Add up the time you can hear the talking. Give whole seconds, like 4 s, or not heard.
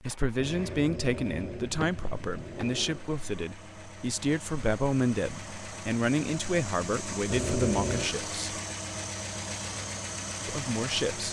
9 s.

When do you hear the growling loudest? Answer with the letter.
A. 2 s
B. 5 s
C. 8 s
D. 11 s
C.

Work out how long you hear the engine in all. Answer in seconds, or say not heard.
11 s.